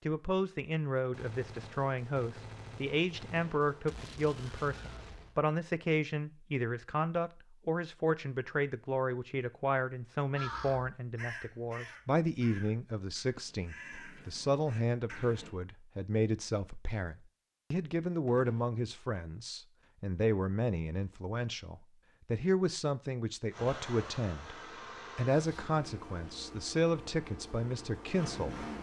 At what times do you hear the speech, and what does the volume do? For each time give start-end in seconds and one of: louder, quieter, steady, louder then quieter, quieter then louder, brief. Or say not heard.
0.1-28.6 steady.